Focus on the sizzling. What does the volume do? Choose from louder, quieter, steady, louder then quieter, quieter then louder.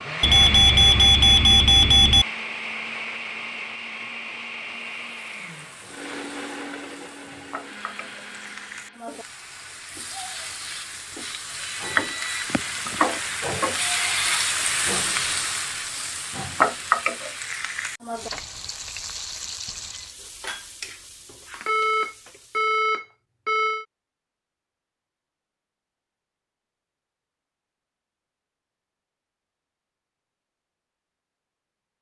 louder then quieter.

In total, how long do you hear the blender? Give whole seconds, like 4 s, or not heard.
9 s.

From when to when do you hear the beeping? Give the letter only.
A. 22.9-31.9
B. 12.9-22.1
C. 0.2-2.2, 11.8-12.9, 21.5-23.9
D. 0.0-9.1
C.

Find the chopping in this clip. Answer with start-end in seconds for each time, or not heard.
not heard.